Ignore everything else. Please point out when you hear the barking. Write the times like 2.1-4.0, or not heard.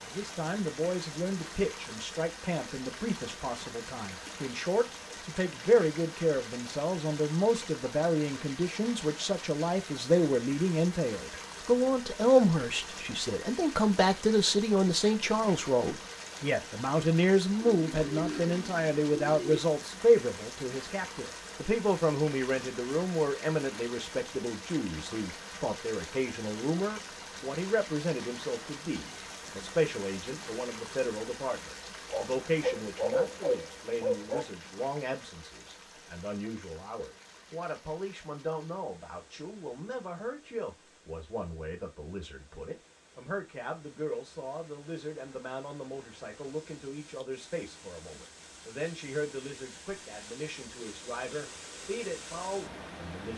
32.1-34.5.